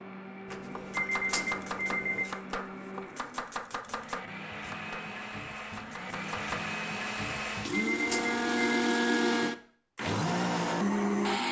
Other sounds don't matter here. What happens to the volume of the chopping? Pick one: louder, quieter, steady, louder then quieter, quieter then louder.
quieter.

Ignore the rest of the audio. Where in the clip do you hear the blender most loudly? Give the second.
9 s.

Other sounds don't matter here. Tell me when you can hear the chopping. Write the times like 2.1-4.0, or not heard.
0.8-6.6.